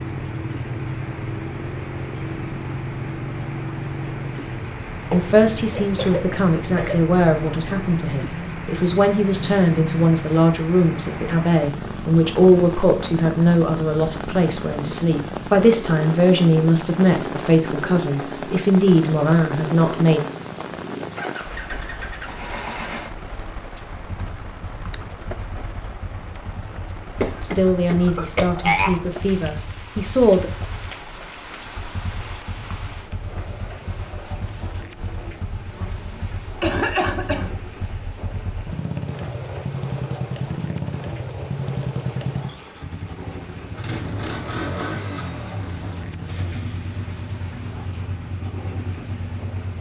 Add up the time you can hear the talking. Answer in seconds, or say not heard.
18 s.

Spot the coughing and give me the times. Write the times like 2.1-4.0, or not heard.
5.1-7.0, 27.2-29.1, 35.8-37.5.